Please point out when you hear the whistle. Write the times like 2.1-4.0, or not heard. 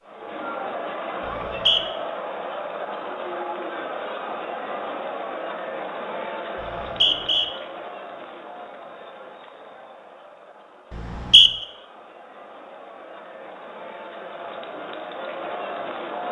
1.2-1.8, 6.6-7.5, 10.9-11.5.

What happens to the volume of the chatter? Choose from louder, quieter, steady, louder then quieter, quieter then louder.
quieter then louder.